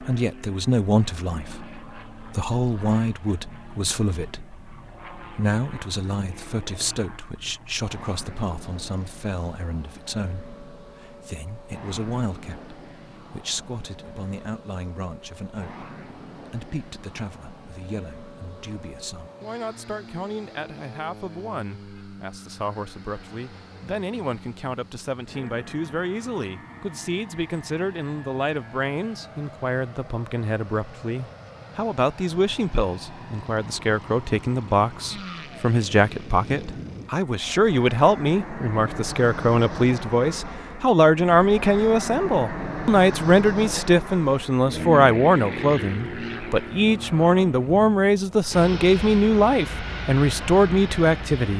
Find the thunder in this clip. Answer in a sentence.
The thunder can't be heard in this clip.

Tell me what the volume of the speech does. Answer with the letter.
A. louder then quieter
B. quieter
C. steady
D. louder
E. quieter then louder
E.